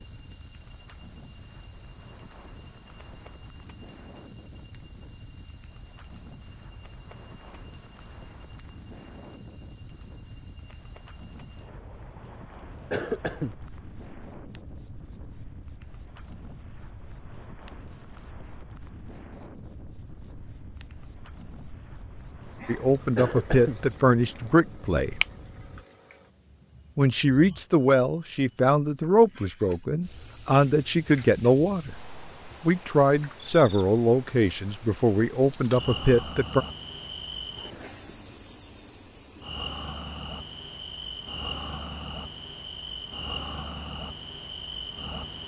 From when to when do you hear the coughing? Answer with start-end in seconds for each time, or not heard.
12.9-13.6, 23.1-23.8.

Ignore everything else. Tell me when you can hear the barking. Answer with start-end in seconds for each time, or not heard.
not heard.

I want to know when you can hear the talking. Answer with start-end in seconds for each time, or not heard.
22.6-25.2, 26.9-31.9, 32.6-36.6.